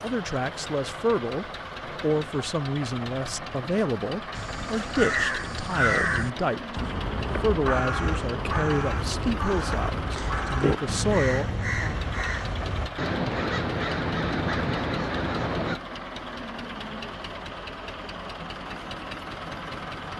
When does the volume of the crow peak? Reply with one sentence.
The volume of the crow peaks at 6 seconds.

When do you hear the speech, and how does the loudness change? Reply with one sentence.
The speech can be heard from 0.0 to 12.0 s, at a steady volume.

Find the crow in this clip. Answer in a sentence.
The crow can be heard from 4.3 to 15.8 s.